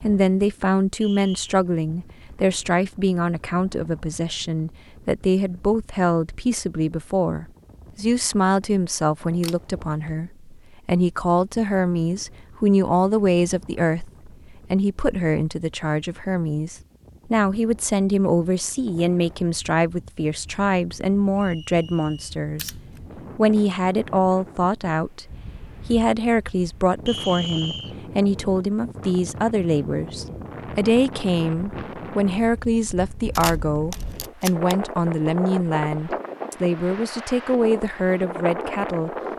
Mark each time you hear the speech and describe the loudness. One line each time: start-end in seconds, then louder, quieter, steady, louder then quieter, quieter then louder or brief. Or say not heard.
0.0-39.1 steady.